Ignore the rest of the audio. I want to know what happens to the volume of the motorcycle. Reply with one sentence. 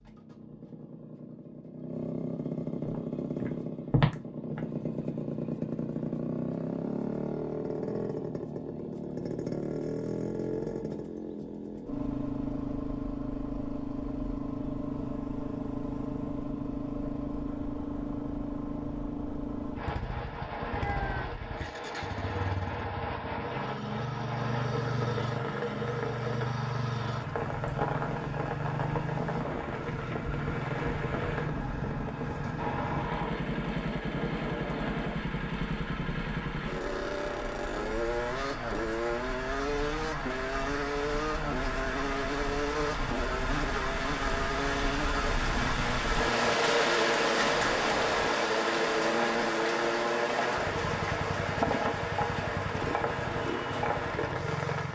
The volume of the motorcycle stays about the same.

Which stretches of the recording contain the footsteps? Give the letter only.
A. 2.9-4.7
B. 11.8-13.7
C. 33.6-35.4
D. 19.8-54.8
A.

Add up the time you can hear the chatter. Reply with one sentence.
The chatter can't be heard in this clip.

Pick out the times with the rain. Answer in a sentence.
The rain can be heard from 19.8 to 54.8 s.